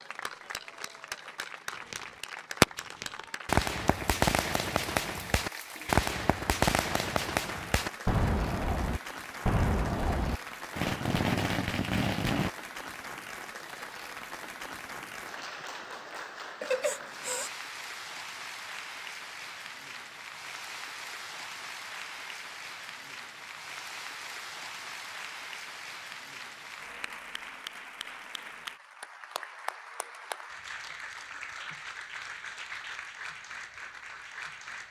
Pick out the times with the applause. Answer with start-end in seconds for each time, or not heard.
0.0-34.8.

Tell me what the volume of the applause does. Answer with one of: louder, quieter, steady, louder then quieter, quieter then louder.
steady.